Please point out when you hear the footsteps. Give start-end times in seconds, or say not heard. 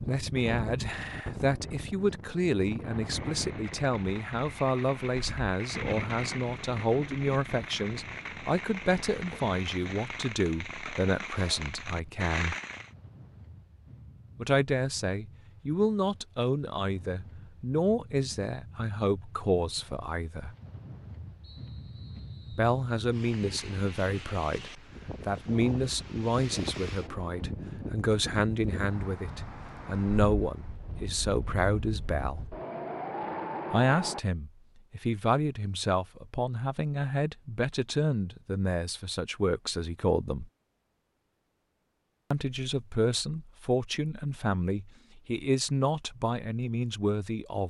not heard.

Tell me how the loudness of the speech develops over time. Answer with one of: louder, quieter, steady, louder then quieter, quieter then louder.
steady.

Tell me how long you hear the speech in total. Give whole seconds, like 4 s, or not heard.
41 s.